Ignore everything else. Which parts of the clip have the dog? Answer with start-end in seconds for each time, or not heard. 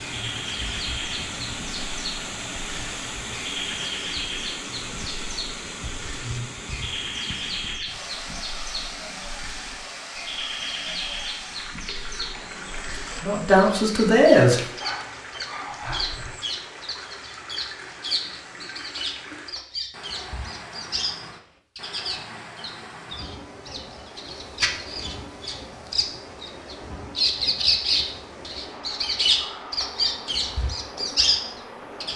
14.4-16.3.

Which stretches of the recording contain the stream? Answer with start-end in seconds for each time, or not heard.
0.0-32.1.